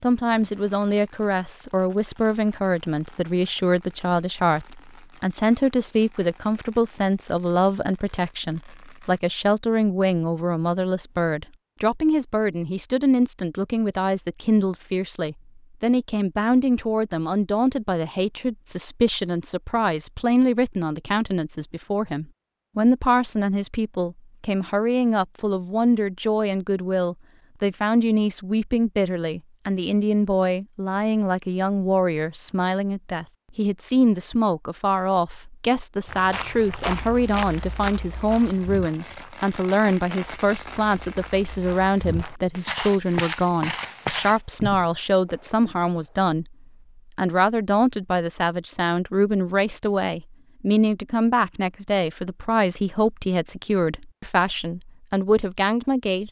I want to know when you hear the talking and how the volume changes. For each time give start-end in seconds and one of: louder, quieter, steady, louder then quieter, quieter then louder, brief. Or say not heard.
0.0-46.5 steady
47.1-56.2 steady.